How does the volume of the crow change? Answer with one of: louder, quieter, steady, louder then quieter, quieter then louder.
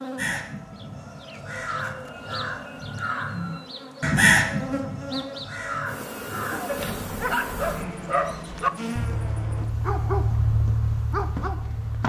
louder then quieter.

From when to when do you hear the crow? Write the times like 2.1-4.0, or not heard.
0.1-6.9.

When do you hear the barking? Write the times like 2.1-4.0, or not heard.
6.7-12.0.